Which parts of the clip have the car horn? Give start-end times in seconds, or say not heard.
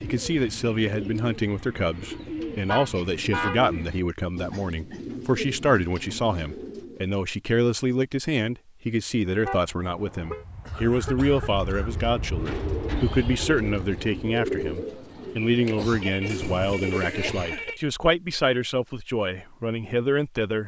2.6-3.6, 9.4-10.4, 15.8-17.8.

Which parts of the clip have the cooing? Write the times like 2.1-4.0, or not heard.
0.0-7.1, 11.8-17.4.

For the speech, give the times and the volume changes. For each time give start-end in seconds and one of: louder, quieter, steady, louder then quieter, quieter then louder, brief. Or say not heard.
0.0-20.6 steady.